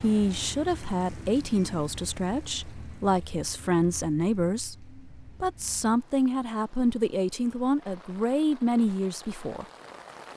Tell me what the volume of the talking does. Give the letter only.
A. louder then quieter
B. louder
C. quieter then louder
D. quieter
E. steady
E.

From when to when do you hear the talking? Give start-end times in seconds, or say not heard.
0.0-9.7.